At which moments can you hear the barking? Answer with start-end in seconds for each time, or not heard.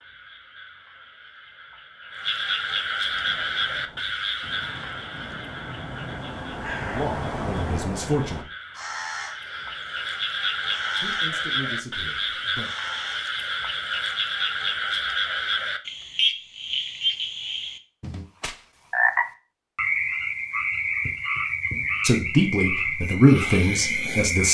not heard.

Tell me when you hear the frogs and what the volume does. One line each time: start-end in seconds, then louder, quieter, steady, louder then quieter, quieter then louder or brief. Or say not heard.
0.0-24.4 quieter then louder.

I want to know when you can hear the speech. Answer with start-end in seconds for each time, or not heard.
6.8-8.5, 11.0-12.7, 22.0-24.4.